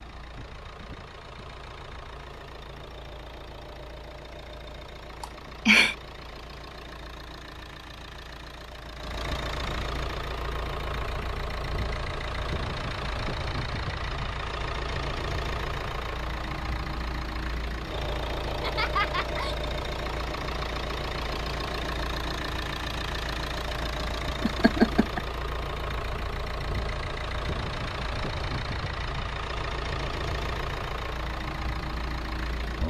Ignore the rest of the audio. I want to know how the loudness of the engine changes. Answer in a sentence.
The loudness of the engine goes up.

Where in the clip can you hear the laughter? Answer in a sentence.
You can hear the laughter from 5.2 to 6.0 s, from 18.4 to 19.6 s and from 24.4 to 25.2 s.